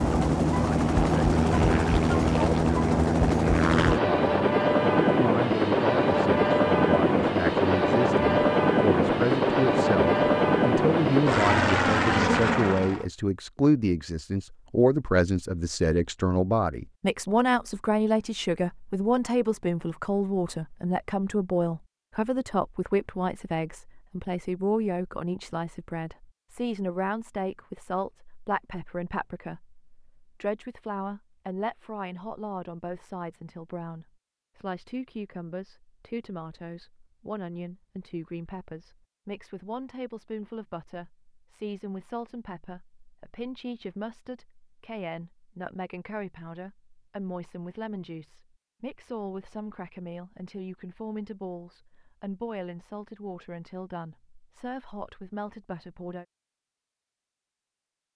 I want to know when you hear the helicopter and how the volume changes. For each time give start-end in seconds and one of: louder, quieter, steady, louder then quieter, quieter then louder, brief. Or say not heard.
0.0-13.1 steady.